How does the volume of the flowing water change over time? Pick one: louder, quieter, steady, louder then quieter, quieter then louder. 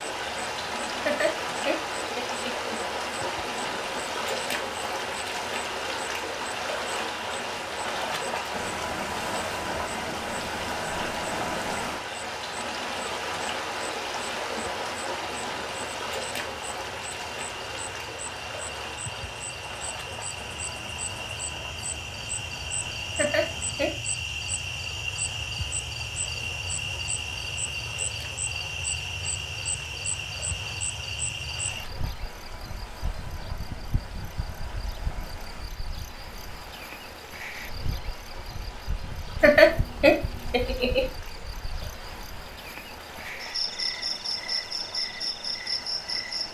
quieter.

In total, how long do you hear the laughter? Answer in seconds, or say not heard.
4 s.